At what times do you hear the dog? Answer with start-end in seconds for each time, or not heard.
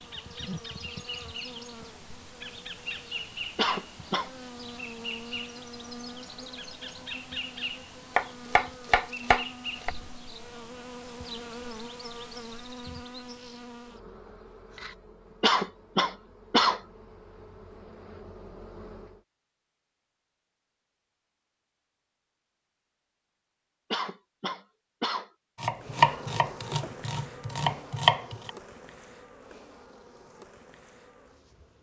not heard.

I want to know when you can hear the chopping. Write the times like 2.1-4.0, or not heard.
8.2-9.9, 25.6-28.5.